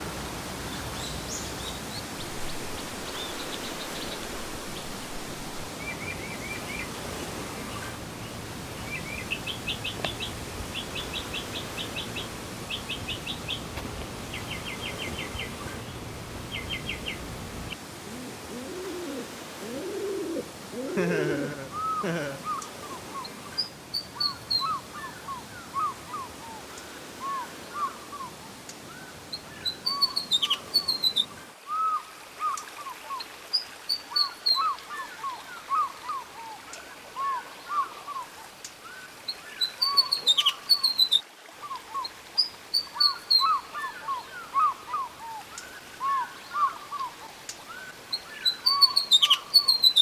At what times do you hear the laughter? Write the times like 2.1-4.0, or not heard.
20.9-22.4.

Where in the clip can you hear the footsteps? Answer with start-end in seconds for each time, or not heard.
not heard.